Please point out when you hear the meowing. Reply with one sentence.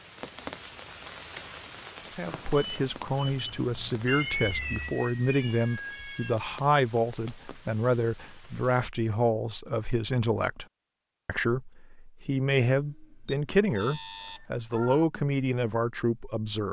The meowing can be heard from 4.0 to 6.3 s and from 14.2 to 15.1 s.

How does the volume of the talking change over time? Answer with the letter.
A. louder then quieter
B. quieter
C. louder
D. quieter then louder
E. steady
E.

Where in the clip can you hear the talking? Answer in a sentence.
The talking can be heard from 2.0 to 10.7 s and from 11.2 to 16.6 s.